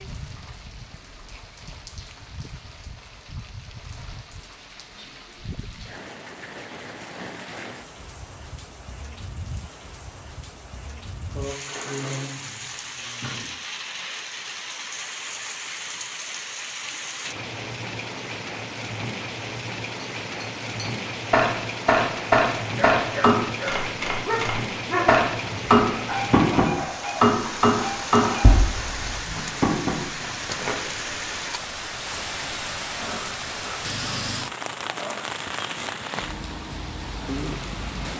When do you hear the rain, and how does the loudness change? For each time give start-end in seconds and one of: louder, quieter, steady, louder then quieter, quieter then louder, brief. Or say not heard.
0.0-38.1 louder.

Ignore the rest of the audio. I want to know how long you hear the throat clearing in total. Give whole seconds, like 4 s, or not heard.
4 s.